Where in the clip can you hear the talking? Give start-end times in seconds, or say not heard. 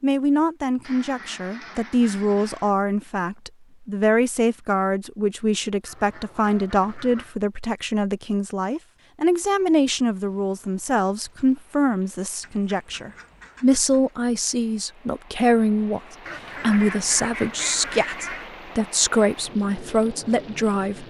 0.0-16.0, 16.6-21.0.